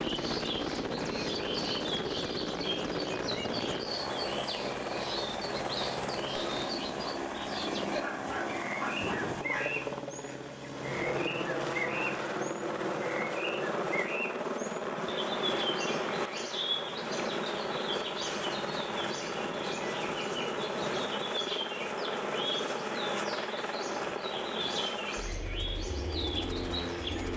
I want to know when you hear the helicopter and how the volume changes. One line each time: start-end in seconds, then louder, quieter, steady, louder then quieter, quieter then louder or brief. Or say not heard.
0.0-27.3 steady.